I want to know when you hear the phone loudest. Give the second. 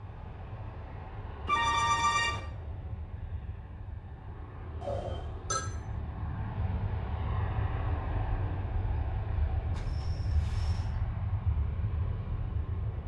2 s.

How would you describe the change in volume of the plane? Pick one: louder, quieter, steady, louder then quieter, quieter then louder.
louder.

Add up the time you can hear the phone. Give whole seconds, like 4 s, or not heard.
3 s.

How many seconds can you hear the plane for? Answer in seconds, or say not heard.
13 s.